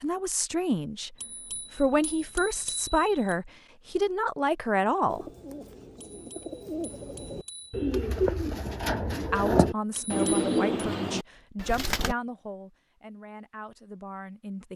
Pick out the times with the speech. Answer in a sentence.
You can hear the speech from 0.0 to 1.1 s, from 1.8 to 5.2 s and from 9.3 to 14.7 s.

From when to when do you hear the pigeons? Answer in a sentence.
You can hear the pigeons from 5.0 to 12.2 s.